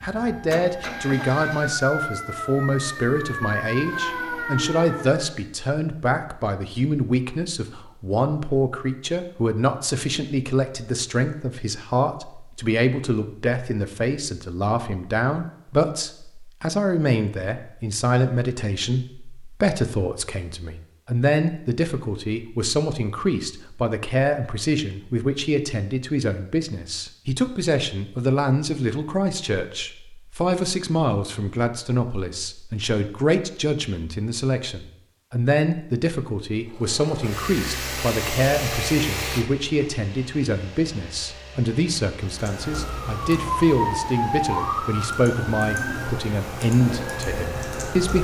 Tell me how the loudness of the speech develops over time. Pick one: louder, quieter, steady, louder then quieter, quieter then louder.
steady.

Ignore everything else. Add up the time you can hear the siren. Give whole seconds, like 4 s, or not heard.
11 s.